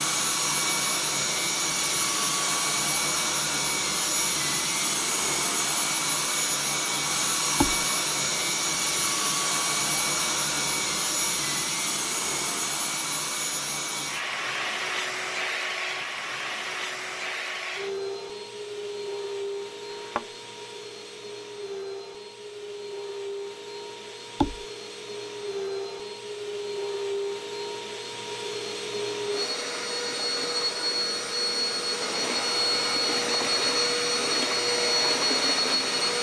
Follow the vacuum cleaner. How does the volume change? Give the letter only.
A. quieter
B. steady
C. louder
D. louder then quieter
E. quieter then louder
E.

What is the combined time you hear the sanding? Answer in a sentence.
You can't hear the sanding here.